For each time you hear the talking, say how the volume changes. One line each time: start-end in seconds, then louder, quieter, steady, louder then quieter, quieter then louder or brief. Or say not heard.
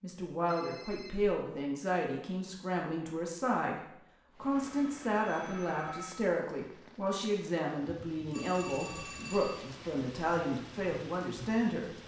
0.0-11.9 steady.